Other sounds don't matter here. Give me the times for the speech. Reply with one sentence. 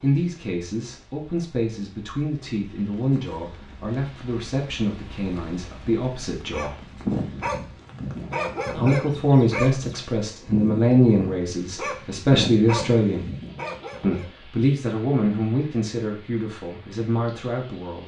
The speech can be heard from 0.0 to 6.8 s, from 8.8 to 13.3 s and from 14.0 to 18.0 s.